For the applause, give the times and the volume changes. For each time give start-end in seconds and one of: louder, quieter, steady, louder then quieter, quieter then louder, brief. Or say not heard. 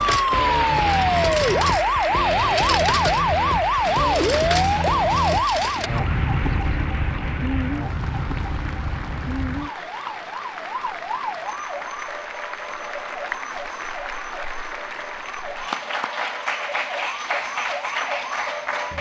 0.0-18.9 quieter then louder.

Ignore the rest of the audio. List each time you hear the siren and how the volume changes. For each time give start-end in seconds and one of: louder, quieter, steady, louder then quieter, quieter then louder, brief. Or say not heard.
0.0-18.9 quieter.